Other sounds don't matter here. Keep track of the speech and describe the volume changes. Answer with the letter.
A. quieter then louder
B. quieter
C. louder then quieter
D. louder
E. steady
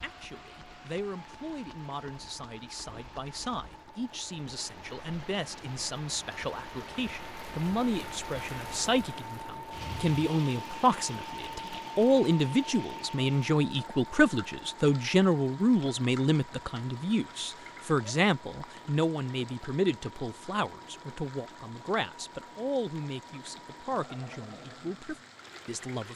C.